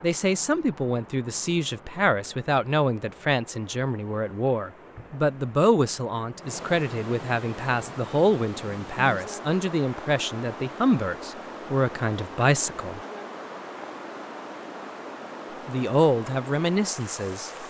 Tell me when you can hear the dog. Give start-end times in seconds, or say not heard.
not heard.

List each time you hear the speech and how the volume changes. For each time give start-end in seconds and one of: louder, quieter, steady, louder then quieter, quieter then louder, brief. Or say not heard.
0.0-13.0 steady
15.7-17.5 brief.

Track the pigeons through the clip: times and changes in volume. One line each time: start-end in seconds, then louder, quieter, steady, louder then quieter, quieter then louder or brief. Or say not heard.
not heard.